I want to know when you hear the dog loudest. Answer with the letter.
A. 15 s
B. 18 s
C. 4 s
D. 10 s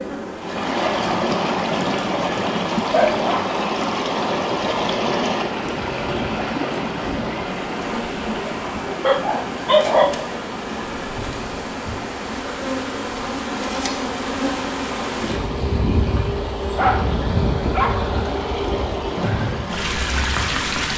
D.